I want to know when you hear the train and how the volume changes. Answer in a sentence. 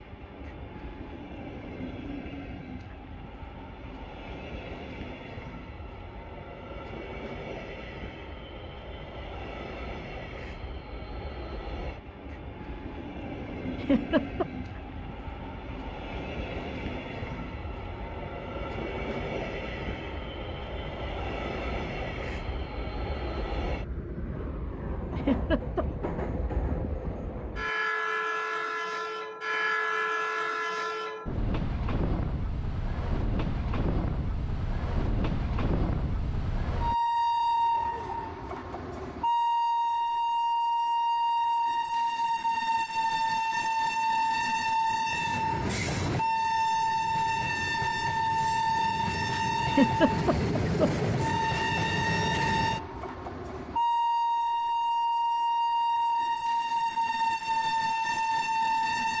You can hear the train from 0.0 to 59.1 s, getting louder.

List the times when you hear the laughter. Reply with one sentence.
The laughter can be heard from 13.8 to 14.4 s, from 25.1 to 26.1 s and from 49.6 to 51.0 s.